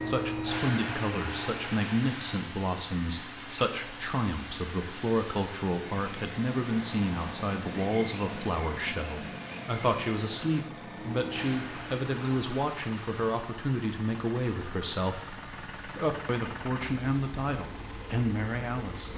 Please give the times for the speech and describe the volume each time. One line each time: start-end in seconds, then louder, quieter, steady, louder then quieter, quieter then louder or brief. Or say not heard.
0.1-19.1 steady.